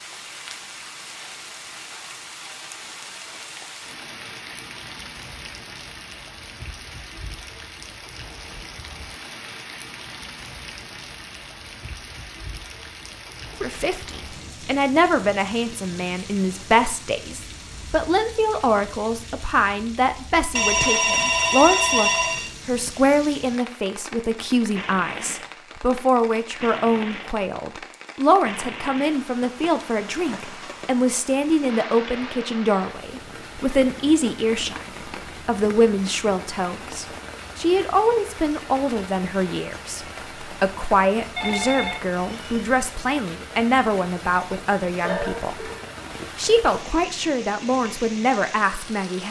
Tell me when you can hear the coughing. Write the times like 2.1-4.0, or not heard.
45.0-46.2.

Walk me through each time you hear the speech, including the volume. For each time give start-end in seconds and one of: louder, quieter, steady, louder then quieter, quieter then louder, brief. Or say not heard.
13.6-34.9 steady
35.5-45.7 steady
46.4-49.2 brief.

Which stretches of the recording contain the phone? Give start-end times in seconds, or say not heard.
20.6-22.5, 41.4-42.6.